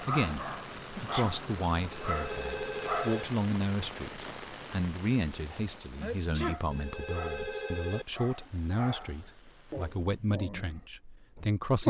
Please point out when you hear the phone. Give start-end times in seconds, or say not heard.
2.0-3.2, 6.7-8.1.